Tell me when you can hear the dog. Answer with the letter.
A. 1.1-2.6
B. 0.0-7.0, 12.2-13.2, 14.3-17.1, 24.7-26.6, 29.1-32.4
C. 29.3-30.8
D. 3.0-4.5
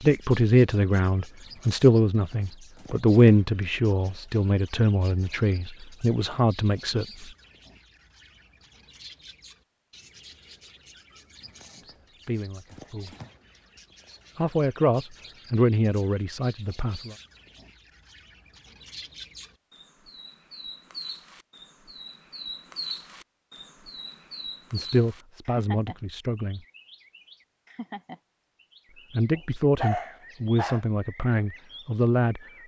C.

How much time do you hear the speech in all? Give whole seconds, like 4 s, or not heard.
16 s.